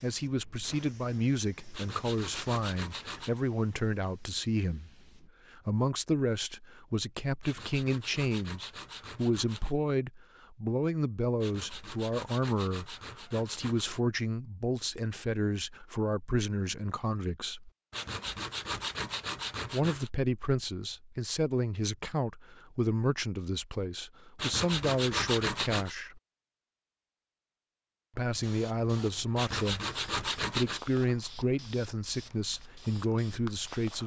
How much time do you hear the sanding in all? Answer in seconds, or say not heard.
12 s.